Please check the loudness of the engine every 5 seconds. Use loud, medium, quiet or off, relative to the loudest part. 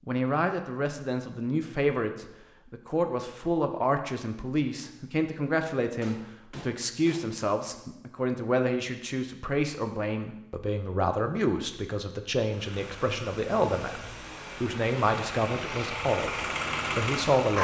off, off, medium, loud.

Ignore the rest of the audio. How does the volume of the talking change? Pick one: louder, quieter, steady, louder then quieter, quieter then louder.
steady.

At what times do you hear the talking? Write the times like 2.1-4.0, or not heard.
0.1-17.5.